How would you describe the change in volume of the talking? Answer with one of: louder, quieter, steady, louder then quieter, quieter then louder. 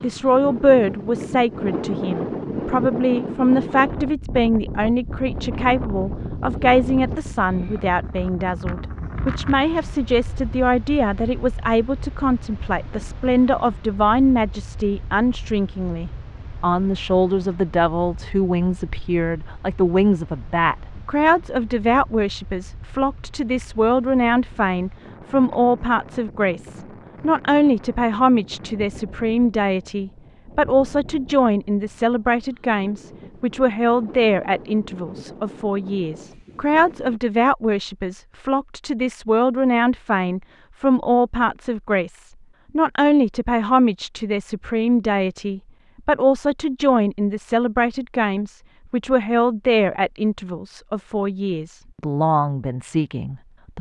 steady.